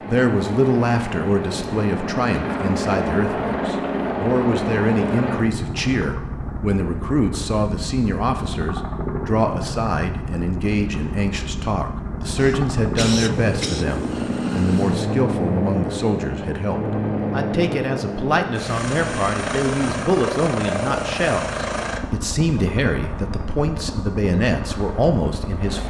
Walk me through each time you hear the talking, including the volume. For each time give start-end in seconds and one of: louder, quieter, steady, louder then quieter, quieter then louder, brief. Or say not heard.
0.1-25.8 steady.